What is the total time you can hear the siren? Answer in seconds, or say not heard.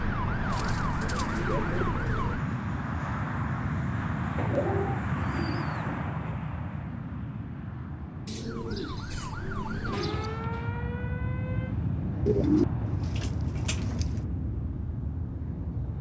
6 s.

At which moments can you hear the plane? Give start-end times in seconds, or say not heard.
0.0-15.9.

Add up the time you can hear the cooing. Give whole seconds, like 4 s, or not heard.
8 s.